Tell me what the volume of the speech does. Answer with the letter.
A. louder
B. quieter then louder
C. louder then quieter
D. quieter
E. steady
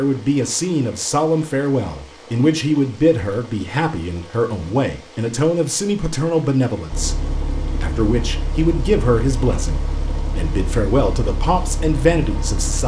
E.